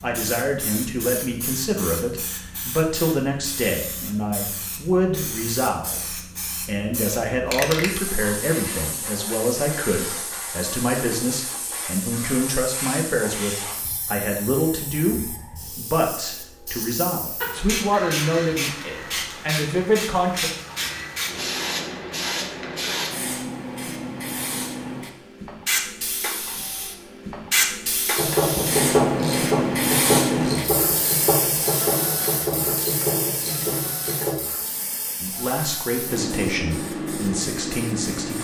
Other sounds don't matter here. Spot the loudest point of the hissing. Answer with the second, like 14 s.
30 s.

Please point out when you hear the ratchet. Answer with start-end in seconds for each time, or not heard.
28.1-34.4.